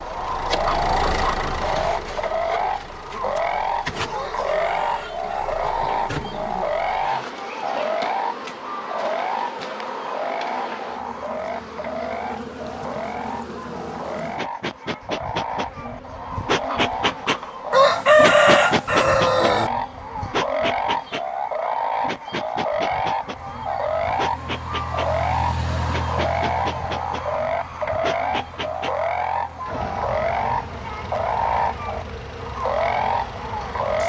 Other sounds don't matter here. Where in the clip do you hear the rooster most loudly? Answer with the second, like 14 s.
18 s.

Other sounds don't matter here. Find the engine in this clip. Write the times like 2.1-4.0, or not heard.
0.0-7.2, 23.4-34.0.